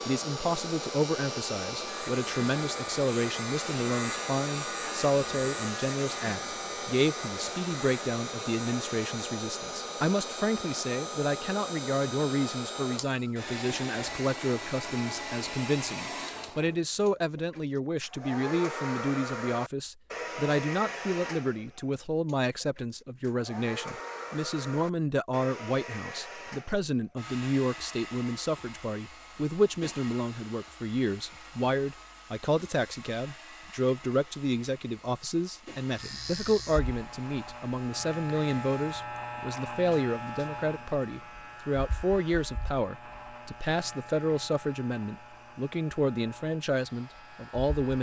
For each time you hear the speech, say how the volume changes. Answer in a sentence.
The speech can be heard from 0.1 to 47.9 s, at a steady volume.